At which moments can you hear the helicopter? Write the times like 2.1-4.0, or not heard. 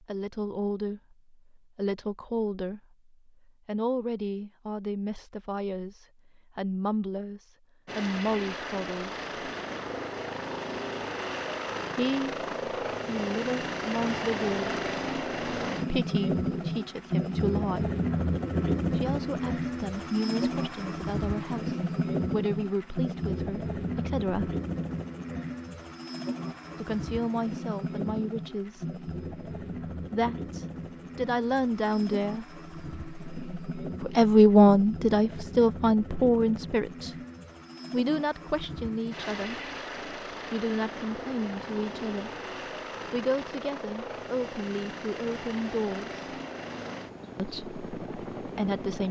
7.8-49.0.